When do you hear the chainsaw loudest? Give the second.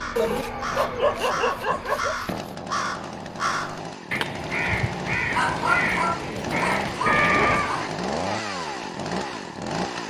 8 s.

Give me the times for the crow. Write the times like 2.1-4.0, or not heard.
0.0-7.9.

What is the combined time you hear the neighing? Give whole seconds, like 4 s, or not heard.
3 s.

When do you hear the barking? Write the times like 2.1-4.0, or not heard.
0.1-2.5, 5.2-8.0.